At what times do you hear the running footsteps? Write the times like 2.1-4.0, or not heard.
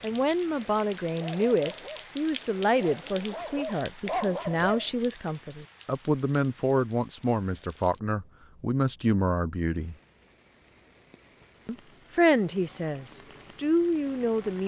not heard.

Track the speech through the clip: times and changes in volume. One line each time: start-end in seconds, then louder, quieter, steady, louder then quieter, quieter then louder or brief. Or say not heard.
0.0-9.9 steady
11.7-14.6 brief.